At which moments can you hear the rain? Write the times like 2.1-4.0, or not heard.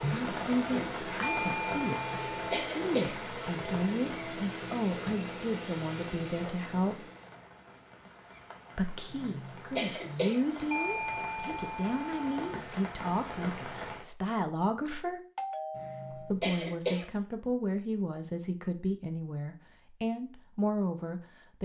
0.0-14.1.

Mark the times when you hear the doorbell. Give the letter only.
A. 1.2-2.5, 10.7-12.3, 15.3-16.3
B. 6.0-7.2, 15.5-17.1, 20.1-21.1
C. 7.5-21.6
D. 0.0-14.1
A.